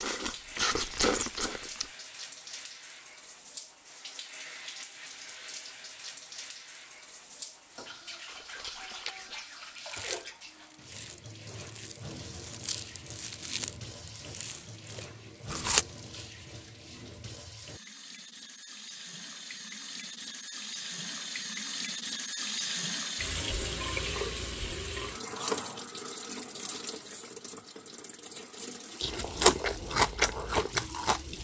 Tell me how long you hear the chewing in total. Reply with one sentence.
You can hear the chewing for 12 seconds altogether.